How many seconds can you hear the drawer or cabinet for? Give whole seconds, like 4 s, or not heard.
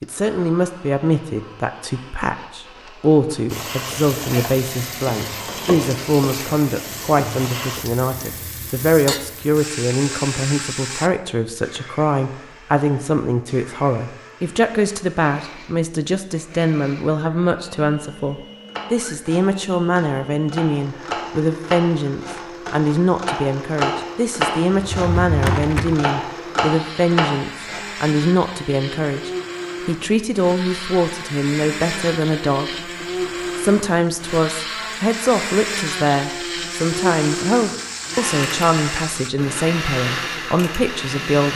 2 s.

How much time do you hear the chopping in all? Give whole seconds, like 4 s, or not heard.
9 s.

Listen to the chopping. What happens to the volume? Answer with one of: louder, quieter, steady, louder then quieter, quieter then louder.
louder.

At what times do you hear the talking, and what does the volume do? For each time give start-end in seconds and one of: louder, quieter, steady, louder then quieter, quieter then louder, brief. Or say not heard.
0.0-33.0 steady
33.5-41.5 steady.